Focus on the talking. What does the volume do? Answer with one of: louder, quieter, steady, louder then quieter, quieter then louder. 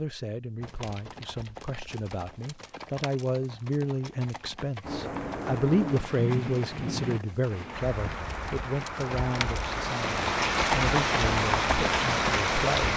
louder then quieter.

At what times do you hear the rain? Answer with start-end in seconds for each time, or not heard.
4.8-12.9.